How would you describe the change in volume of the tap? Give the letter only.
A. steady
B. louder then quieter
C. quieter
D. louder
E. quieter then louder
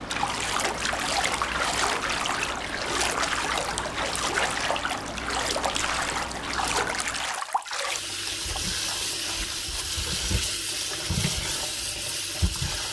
A.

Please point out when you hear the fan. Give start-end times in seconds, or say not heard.
0.0-7.4.